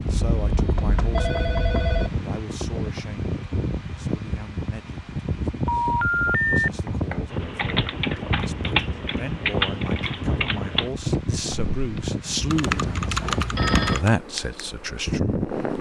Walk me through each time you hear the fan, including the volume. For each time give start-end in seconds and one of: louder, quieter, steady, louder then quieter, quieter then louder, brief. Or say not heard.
0.0-15.7 steady.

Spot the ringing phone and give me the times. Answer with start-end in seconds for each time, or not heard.
0.2-2.1, 5.7-6.7, 13.0-14.0.